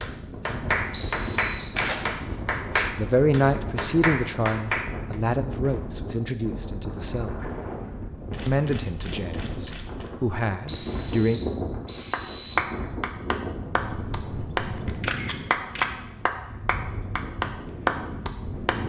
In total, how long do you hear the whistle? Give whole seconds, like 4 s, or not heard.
3 s.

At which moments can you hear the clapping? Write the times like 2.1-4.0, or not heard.
0.0-5.2, 12.1-18.8.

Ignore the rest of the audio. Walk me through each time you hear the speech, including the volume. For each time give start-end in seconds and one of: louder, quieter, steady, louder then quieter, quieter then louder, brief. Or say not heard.
3.0-7.5 quieter
8.4-11.4 brief.